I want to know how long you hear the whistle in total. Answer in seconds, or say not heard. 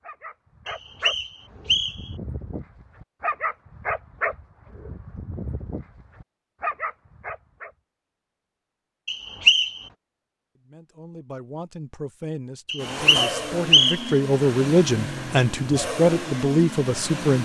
4 s.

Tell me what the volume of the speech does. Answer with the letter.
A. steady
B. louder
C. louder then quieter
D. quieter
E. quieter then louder
B.